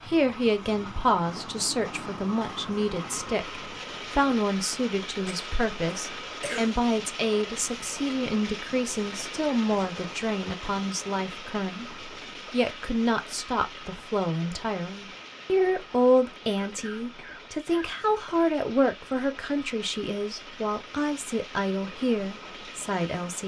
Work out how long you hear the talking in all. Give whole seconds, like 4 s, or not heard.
23 s.